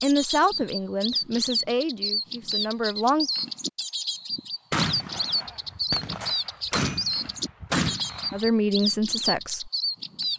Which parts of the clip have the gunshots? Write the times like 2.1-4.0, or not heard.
4.7-8.5.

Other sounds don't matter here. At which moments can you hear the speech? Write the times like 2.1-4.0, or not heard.
0.0-3.3, 8.3-9.7.